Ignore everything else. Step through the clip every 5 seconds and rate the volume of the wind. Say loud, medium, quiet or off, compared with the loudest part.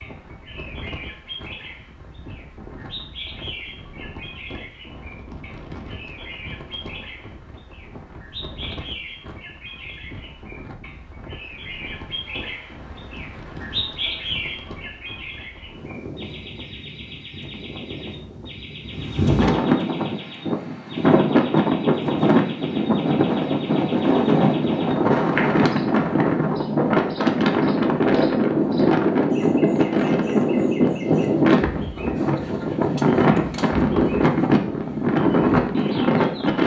quiet, quiet, quiet, medium, loud, loud, loud, loud.